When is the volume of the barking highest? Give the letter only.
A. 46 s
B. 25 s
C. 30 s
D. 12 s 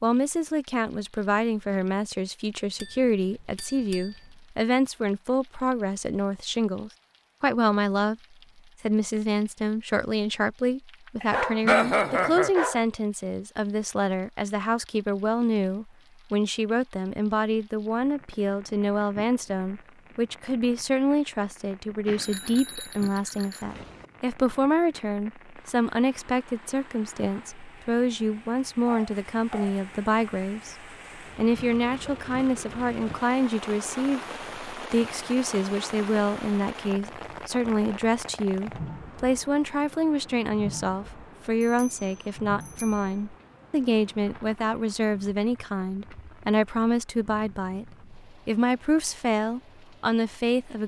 D.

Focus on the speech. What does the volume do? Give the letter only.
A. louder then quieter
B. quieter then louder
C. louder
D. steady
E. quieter
D.